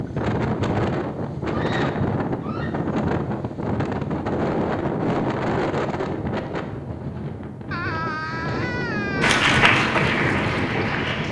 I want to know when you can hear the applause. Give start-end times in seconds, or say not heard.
9.2-11.2.